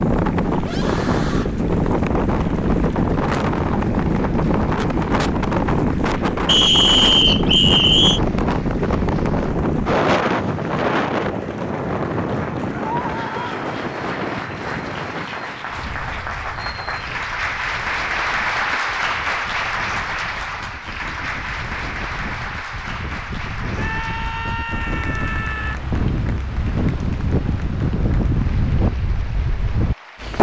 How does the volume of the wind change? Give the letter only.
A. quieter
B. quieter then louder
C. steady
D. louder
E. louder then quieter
B.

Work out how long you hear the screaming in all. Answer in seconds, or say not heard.
4 s.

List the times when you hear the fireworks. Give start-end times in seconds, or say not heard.
not heard.